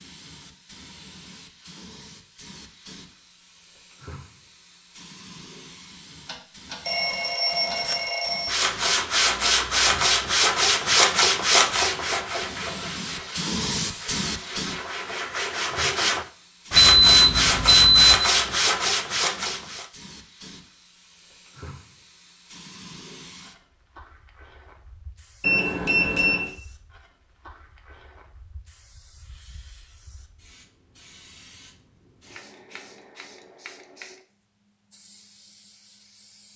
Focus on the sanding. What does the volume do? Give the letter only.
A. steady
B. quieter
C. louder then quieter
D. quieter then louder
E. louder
D.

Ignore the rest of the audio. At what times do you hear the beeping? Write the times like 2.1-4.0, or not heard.
6.2-8.6, 16.8-18.1, 25.4-26.5.